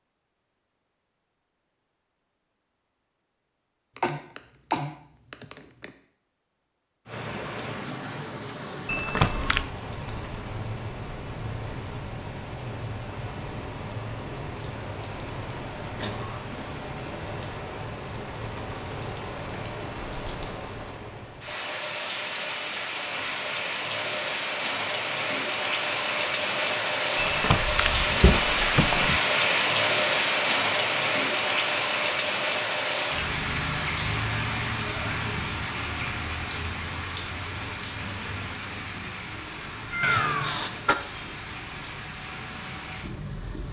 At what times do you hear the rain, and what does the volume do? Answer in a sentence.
You can hear the rain from 7.0 to 43.6 s, getting louder then quieter.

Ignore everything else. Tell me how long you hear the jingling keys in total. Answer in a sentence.
The jingling keys can be heard for 3 seconds in total.